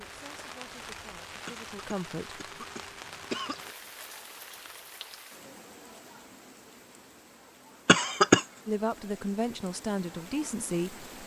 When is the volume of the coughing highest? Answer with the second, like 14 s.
8 s.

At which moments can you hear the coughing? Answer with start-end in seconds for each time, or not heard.
1.4-3.7, 7.8-8.4.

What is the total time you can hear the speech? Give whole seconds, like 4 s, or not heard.
5 s.